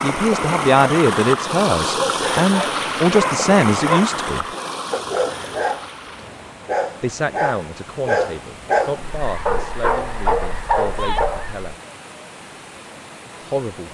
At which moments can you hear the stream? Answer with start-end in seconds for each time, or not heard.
0.0-13.8.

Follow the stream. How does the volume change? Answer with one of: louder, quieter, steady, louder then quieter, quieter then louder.
quieter.